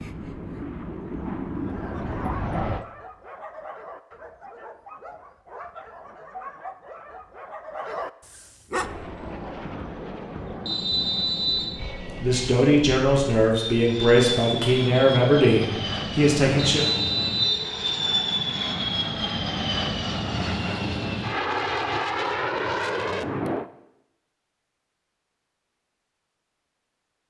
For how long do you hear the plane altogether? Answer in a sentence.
You can hear the plane for 18 seconds altogether.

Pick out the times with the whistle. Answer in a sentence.
You can hear the whistle from 10.7 to 11.8 s and from 16.8 to 17.6 s.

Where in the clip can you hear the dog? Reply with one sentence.
You can hear the dog from 1.6 to 8.9 s.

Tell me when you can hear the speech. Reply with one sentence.
The speech can be heard from 12.0 to 16.8 s.